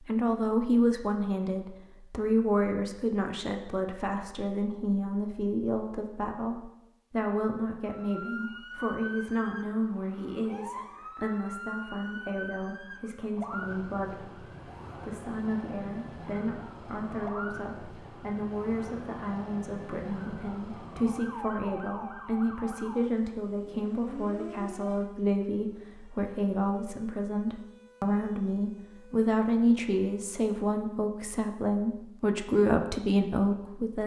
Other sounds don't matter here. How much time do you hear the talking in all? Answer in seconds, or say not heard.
34 s.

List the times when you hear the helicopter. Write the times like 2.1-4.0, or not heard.
not heard.